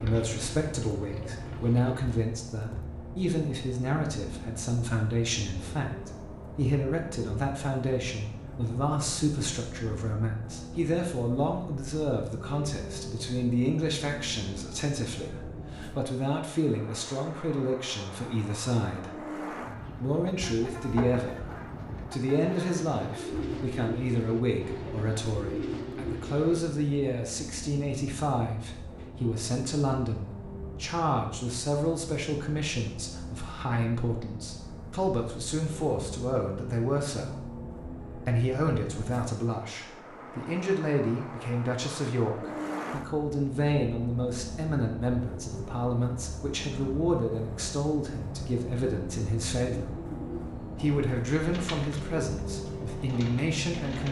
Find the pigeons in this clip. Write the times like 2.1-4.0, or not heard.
0.0-2.0, 19.6-26.6, 49.7-54.0.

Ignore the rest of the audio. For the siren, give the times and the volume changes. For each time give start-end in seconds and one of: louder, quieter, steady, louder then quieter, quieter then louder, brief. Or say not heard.
not heard.